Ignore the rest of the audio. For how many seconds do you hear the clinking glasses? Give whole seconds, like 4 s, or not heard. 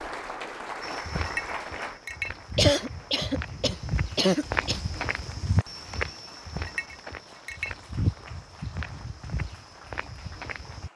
2 s.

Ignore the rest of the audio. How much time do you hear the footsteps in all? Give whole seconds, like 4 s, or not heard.
10 s.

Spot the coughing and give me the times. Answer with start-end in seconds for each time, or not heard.
2.5-4.8.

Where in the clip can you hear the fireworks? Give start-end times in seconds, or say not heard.
not heard.